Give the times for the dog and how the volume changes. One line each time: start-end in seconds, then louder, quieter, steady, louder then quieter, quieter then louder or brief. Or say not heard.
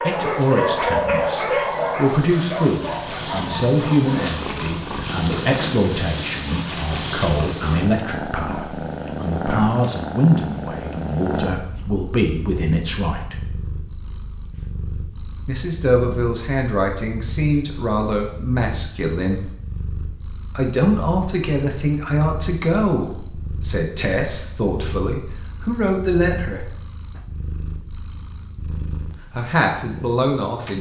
0.0-4.8 quieter.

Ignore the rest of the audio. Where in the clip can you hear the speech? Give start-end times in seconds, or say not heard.
0.0-13.4, 15.4-19.5, 20.4-26.6, 29.4-30.7.